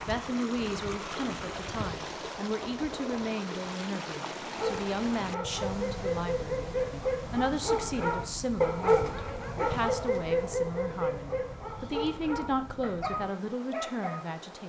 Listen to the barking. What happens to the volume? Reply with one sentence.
The loudness of the barking goes up, then down.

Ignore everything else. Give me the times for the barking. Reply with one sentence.
The barking can be heard from 4.5 to 14.2 s.